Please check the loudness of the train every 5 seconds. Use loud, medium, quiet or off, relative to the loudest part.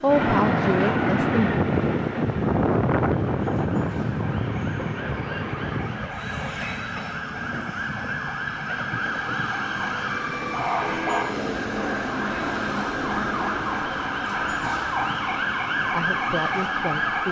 loud, medium, quiet, quiet.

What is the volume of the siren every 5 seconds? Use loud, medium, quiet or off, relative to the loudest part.
quiet, medium, loud, loud.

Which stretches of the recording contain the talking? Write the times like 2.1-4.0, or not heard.
0.0-1.6, 15.8-17.2.